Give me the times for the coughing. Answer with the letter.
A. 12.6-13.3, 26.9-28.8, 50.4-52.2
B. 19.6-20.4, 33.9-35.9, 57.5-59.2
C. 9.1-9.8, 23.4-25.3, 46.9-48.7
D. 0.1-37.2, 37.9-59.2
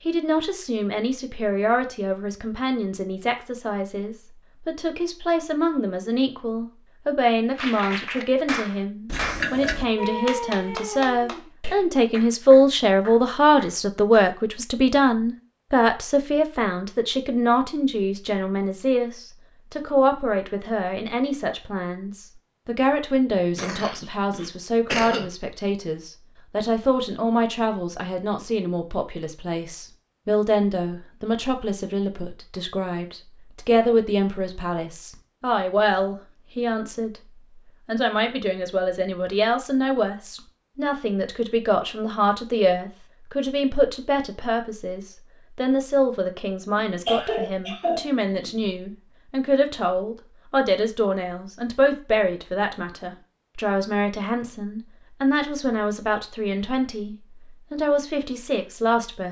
C.